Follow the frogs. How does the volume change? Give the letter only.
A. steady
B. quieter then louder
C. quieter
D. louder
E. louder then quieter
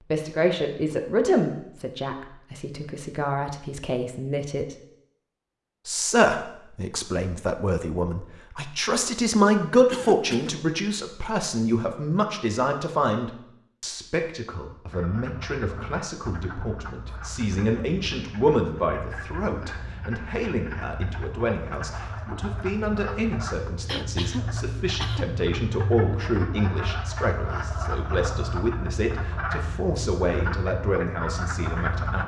D.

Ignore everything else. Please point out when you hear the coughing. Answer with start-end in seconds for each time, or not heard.
9.9-10.6, 23.9-25.2.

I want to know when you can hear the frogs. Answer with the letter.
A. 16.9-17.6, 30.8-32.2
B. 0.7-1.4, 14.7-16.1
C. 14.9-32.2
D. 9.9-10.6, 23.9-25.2
C.